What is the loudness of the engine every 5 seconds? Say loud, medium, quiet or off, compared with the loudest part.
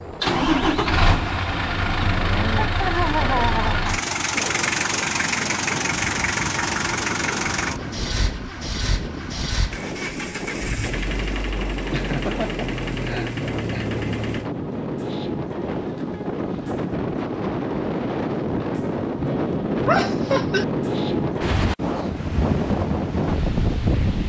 loud, loud, medium, off, off.